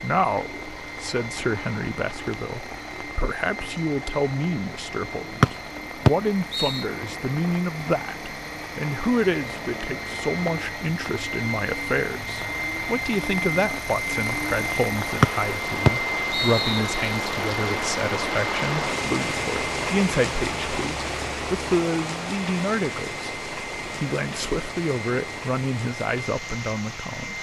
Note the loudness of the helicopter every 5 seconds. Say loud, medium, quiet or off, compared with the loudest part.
medium, medium, loud, loud, medium, medium.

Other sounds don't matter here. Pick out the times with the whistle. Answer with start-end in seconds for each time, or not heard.
5.4-6.8, 15.2-17.1.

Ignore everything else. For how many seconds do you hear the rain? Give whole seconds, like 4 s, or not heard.
27 s.